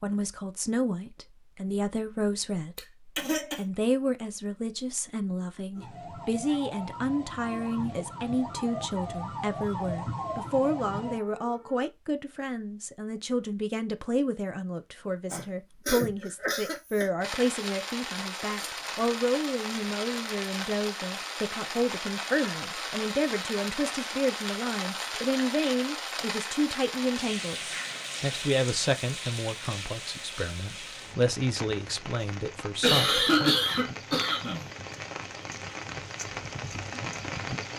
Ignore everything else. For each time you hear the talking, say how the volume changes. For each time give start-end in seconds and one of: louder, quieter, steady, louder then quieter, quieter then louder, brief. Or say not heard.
0.0-33.5 steady.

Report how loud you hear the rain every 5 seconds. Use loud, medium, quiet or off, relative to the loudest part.
off, off, off, loud, loud, loud, medium, loud.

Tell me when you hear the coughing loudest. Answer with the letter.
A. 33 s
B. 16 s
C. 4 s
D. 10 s
A.